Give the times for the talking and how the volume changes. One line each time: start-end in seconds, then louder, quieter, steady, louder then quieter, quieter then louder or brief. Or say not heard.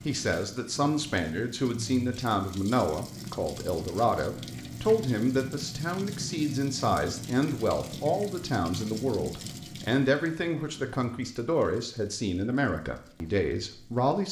0.1-14.2 steady.